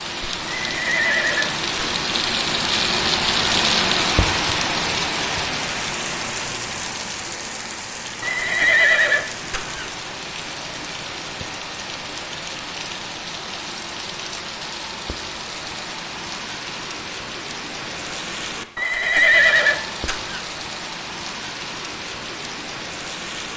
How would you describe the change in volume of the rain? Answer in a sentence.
The loudness of the rain goes down.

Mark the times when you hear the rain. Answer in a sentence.
The rain can be heard from 0.0 to 23.5 s.